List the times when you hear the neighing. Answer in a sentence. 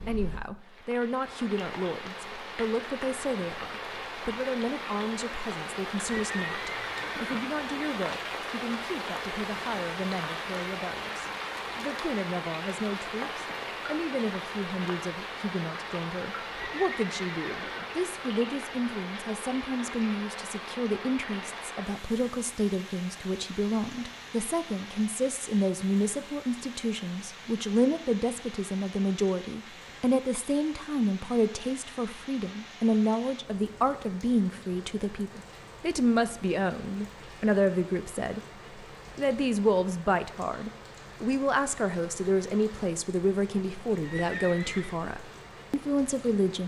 You can hear the neighing from 6.0 to 7.4 s, from 16.5 to 17.9 s and from 44.0 to 45.0 s.